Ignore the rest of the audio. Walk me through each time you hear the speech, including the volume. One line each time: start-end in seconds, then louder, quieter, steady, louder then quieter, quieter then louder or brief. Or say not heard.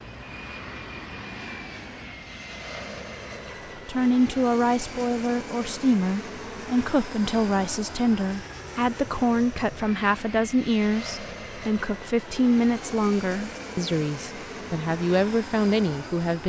3.8-16.4 steady.